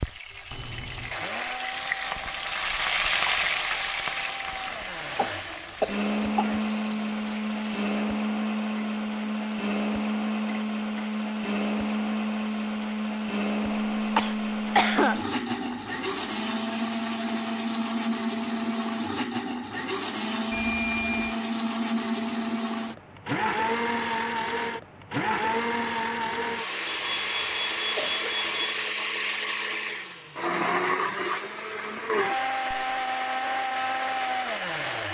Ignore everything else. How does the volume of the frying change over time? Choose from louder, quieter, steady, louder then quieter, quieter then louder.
quieter.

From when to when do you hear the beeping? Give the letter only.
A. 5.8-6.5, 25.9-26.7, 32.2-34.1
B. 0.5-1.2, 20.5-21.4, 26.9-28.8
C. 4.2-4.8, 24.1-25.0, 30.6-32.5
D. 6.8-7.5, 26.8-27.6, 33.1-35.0
B.